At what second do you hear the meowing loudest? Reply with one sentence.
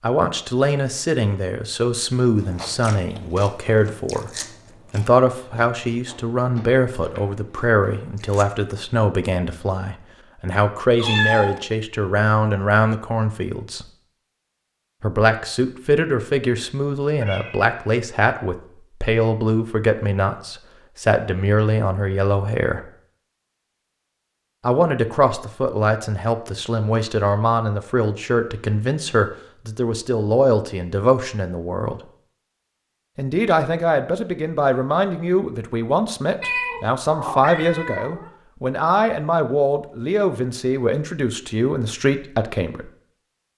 The volume of the meowing peaks at 11 seconds.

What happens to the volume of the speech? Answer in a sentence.
The volume of the speech stays about the same.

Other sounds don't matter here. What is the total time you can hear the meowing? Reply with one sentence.
You can hear the meowing for 3 seconds altogether.